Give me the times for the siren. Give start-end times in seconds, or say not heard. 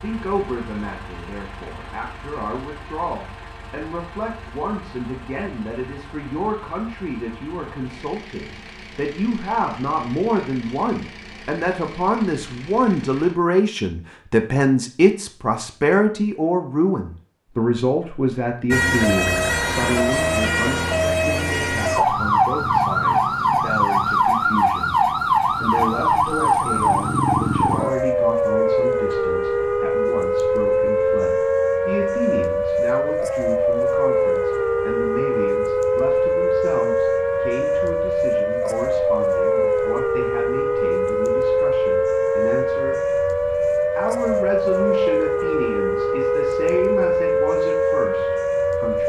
18.7-49.0.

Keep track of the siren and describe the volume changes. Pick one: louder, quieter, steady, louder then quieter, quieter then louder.
steady.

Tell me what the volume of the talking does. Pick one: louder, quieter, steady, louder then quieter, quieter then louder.
louder then quieter.